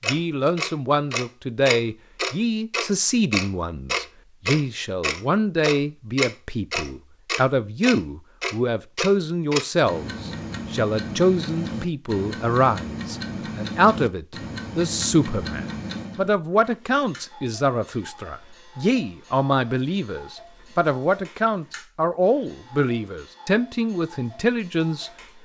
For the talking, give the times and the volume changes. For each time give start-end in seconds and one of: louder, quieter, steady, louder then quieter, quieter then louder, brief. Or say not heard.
0.1-25.4 steady.